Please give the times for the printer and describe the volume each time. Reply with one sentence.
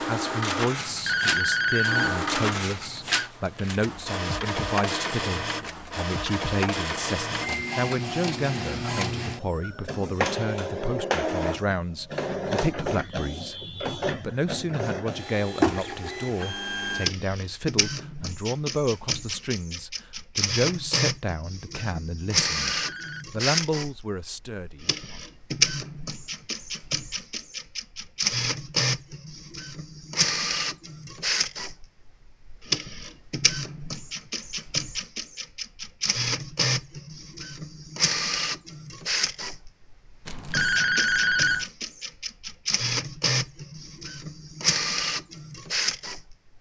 You can hear the printer from 0.0 to 46.5 s, at a steady volume.